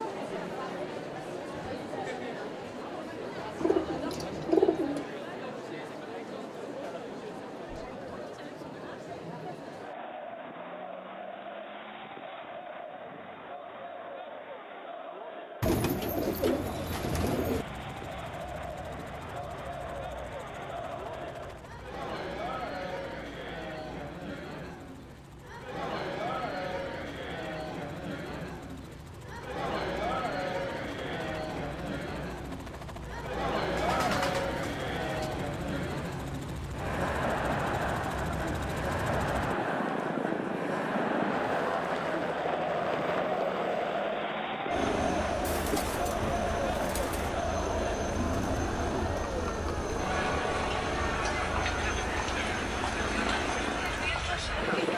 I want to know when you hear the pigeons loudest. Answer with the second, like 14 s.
5 s.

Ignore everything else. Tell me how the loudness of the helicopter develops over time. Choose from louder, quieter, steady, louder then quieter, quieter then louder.
louder.